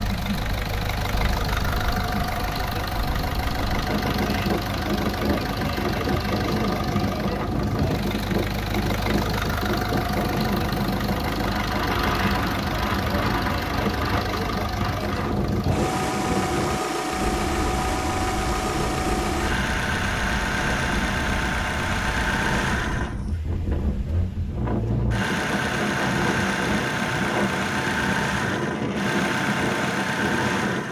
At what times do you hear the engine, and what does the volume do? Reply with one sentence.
The engine can be heard from 0.0 to 30.8 s, at a steady volume.